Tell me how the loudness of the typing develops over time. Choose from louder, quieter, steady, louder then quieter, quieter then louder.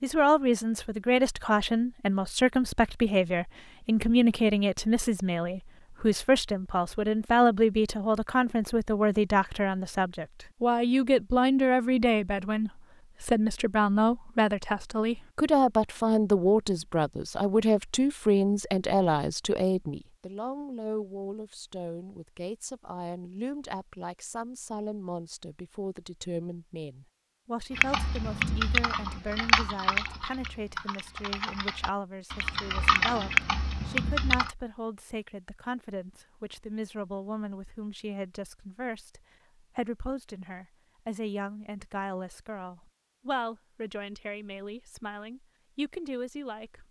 quieter then louder.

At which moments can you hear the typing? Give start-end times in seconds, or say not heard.
27.8-34.5.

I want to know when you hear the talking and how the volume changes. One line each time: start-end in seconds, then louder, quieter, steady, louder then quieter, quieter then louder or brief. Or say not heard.
0.0-46.8 quieter.